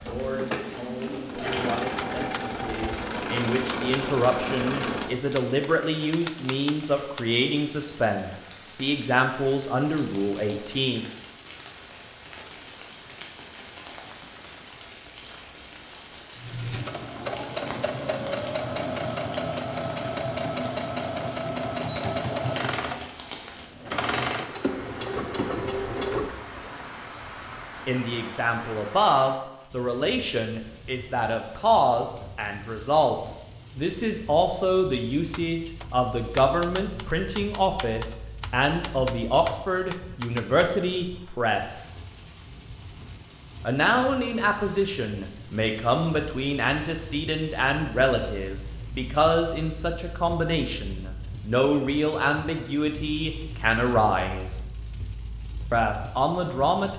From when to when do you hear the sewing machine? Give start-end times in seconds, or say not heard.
0.0-5.3, 16.4-26.9.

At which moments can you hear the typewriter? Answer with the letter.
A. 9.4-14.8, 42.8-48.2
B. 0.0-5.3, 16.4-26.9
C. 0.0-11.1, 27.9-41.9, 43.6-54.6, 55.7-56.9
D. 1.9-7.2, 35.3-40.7
D.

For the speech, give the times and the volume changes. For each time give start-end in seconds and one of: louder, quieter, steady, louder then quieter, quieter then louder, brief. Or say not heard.
0.0-11.1 louder
27.9-41.9 steady
43.6-54.6 steady
55.7-56.9 brief.